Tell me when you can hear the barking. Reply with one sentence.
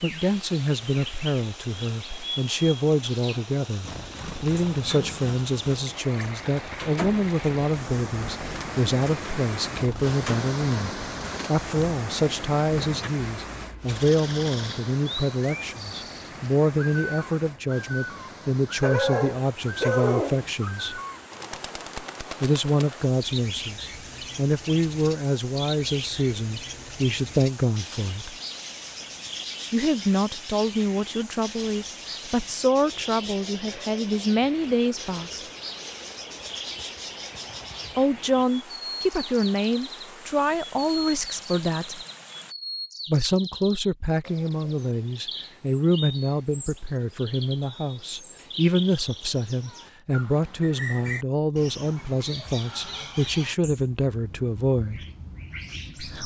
The barking can be heard from 18.8 to 20.6 s.